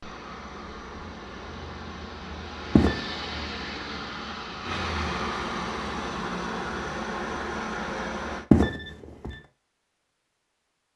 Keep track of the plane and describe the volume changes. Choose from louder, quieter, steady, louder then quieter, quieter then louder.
louder.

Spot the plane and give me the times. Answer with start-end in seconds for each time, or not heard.
0.0-8.4.